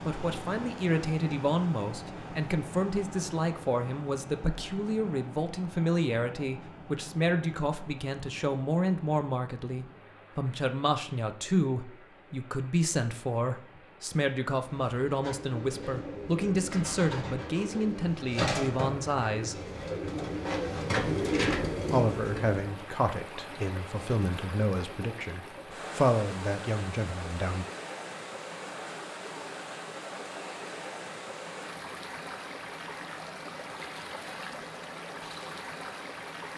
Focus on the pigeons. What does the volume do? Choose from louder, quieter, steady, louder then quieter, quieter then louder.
louder.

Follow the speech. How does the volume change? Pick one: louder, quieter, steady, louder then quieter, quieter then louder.
steady.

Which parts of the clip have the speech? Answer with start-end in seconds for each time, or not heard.
0.1-19.6, 21.9-27.6.